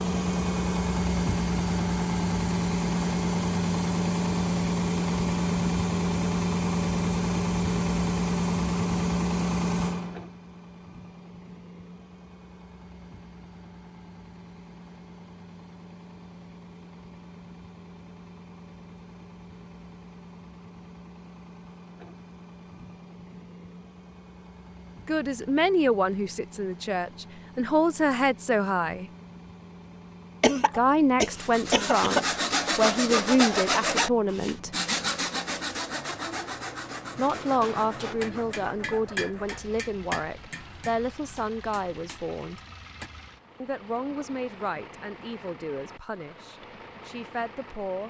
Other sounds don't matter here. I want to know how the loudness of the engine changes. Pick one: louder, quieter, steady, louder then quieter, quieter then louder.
quieter.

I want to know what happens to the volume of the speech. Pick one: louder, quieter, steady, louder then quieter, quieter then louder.
quieter.